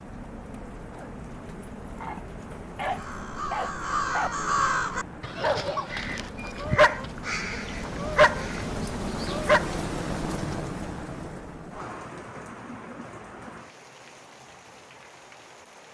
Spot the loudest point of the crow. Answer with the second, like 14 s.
5 s.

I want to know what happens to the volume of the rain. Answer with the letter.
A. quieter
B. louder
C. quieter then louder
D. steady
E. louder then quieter
E.